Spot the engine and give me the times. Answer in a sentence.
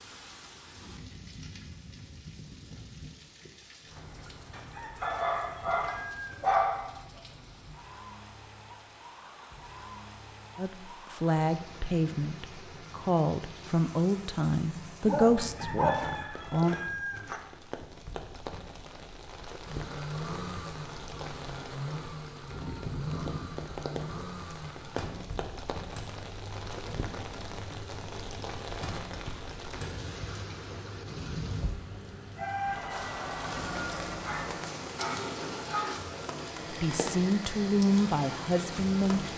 The engine can be heard from 19.6 to 39.3 s.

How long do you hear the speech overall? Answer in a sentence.
The speech can be heard for 9 seconds in total.